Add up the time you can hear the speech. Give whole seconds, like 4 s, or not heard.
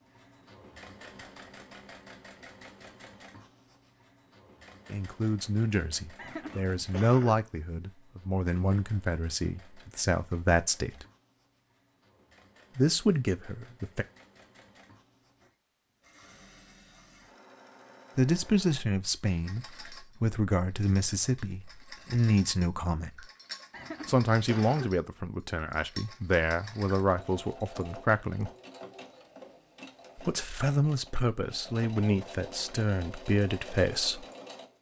21 s.